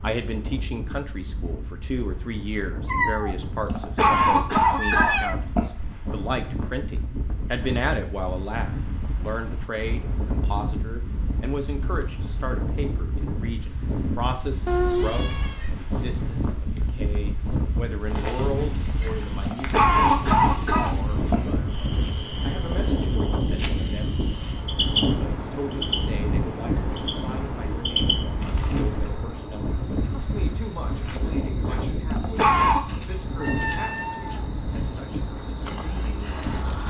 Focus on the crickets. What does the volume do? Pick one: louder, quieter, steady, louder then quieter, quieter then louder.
louder.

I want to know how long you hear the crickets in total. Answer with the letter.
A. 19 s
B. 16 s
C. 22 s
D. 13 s
A.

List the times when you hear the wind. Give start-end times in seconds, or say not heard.
0.0-36.8.